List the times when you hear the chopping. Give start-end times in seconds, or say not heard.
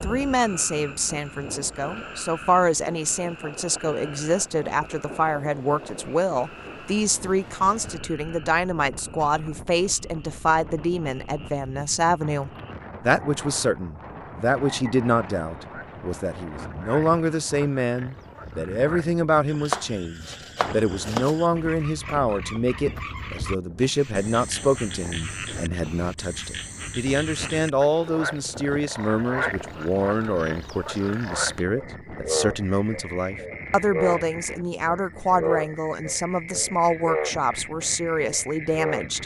19.6-21.4.